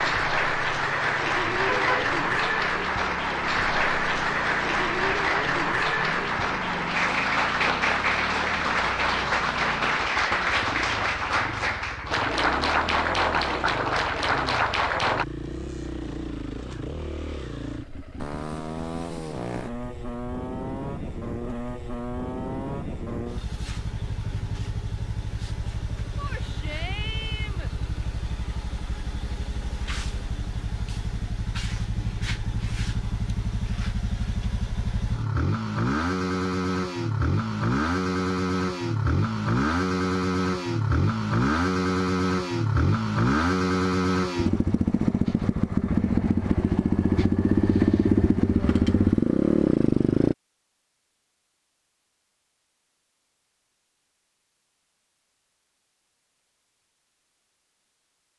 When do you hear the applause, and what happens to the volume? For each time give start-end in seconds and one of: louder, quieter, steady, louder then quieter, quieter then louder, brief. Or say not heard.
0.0-15.2 steady.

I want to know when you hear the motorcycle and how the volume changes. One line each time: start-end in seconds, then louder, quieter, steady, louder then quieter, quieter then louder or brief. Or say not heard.
0.0-50.4 louder.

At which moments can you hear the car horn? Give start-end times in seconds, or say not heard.
1.5-2.1.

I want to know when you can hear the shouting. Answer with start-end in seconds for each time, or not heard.
26.1-27.7.